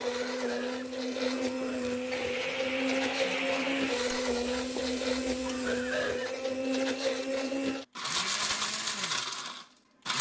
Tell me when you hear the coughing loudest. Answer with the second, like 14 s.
6 s.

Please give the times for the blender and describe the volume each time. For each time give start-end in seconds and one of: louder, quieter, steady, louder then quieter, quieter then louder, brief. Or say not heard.
0.0-10.1 steady.